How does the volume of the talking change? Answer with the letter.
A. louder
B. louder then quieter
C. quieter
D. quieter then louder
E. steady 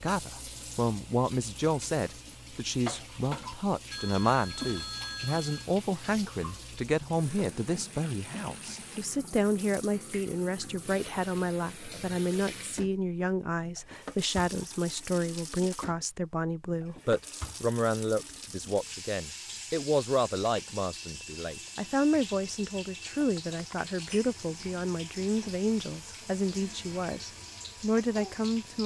E.